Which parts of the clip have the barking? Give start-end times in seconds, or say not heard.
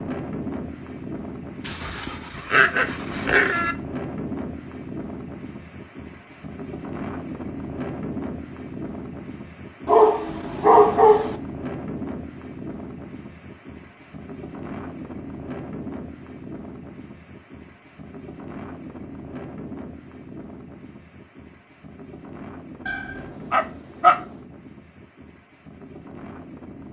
1.6-3.8, 9.8-11.3, 22.9-24.2.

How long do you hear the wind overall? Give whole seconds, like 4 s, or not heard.
27 s.